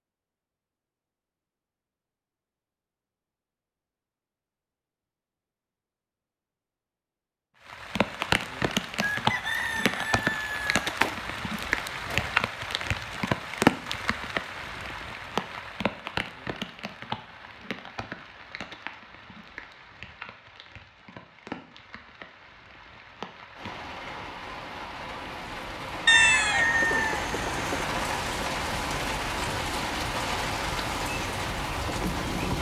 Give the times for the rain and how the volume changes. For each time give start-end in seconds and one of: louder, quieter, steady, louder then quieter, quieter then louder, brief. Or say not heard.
7.7-32.5 quieter then louder.